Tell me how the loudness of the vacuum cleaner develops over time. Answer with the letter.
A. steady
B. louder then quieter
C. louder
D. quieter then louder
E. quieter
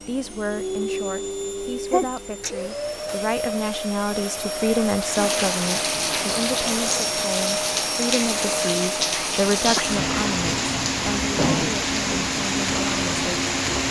A.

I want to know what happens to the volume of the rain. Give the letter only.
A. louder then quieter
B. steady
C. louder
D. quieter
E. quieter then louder
B.